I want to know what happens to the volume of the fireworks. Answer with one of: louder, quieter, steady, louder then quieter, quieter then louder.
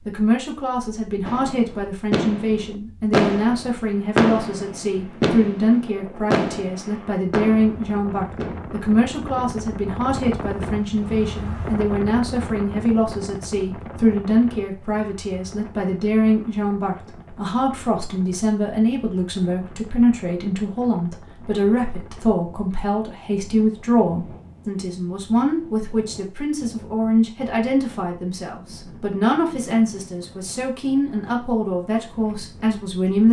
louder then quieter.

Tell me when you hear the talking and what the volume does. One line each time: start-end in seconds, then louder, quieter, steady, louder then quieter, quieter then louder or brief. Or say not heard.
0.1-33.2 steady.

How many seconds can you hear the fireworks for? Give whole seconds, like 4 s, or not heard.
7 s.